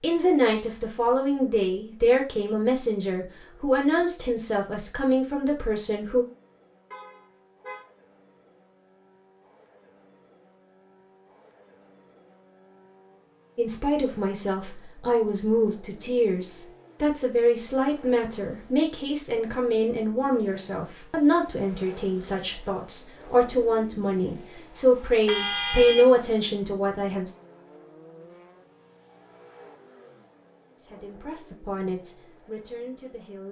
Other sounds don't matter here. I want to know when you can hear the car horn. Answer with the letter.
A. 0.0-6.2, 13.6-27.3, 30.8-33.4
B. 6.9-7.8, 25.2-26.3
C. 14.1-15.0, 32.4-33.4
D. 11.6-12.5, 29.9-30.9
B.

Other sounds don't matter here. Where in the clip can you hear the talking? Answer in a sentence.
The talking can be heard from 0.0 to 6.2 s, from 13.6 to 27.3 s and from 30.8 to 33.4 s.